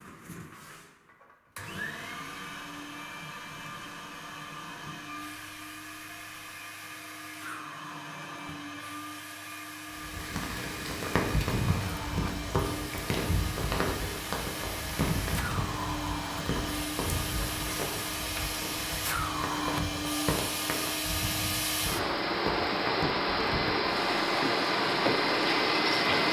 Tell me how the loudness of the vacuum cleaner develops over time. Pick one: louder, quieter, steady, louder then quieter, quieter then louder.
louder.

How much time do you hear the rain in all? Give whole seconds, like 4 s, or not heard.
16 s.